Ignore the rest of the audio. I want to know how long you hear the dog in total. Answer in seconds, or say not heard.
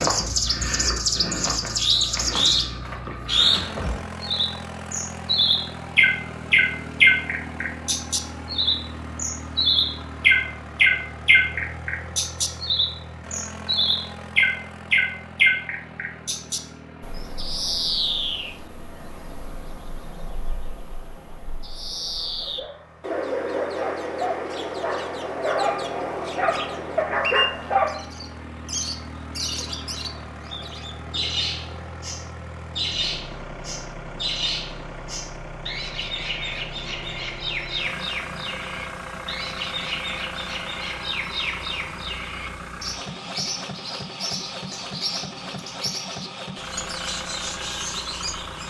6 s.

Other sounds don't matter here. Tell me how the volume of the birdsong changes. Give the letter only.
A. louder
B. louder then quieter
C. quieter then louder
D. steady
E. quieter
E.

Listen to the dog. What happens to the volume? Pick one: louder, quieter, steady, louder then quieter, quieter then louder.
louder.